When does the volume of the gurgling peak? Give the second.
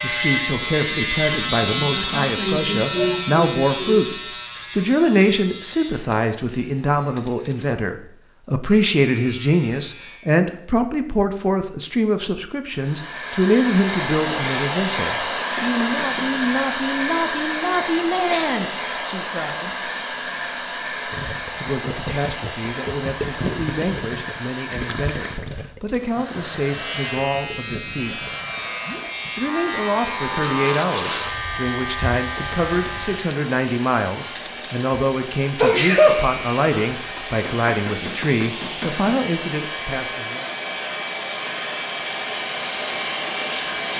23 s.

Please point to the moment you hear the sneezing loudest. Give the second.
36 s.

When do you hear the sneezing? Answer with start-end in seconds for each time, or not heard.
1.6-4.0, 18.1-18.5, 35.5-36.9.